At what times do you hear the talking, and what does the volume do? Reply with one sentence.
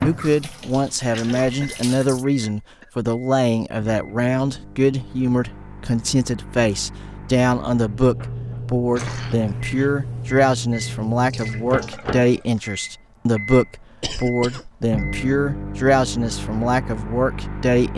The talking can be heard from 0.0 to 17.9 s, at a steady volume.